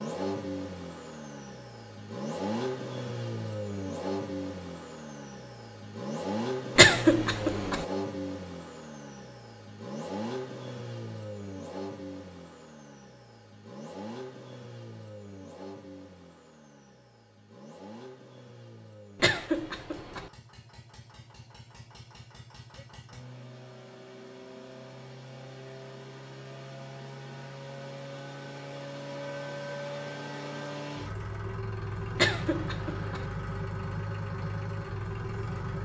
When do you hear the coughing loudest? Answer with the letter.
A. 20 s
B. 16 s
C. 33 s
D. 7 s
D.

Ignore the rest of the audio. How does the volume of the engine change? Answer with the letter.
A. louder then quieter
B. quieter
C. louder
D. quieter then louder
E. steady
D.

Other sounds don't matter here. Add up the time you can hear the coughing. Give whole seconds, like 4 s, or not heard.
3 s.